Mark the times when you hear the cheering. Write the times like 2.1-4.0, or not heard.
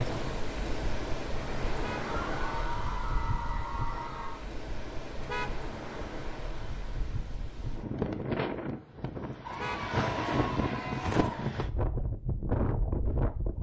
2.0-4.5, 9.4-11.4.